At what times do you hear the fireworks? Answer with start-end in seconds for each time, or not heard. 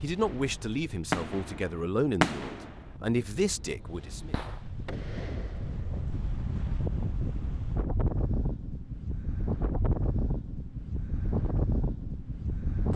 0.2-6.0.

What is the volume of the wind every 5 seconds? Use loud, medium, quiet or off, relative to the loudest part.
quiet, loud, loud.